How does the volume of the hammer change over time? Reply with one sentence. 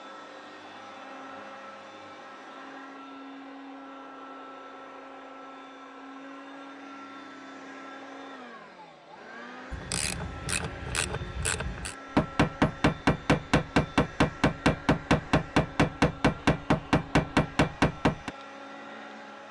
The loudness of the hammer stays about the same.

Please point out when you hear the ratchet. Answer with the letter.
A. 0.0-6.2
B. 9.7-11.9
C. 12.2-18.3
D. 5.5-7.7
B.